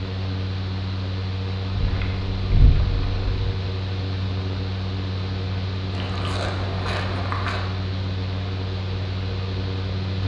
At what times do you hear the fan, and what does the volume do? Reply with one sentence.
You can hear the fan from 0.0 to 10.2 s, at a steady volume.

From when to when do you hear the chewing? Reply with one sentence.
You can hear the chewing from 1.7 to 3.5 s and from 5.9 to 7.6 s.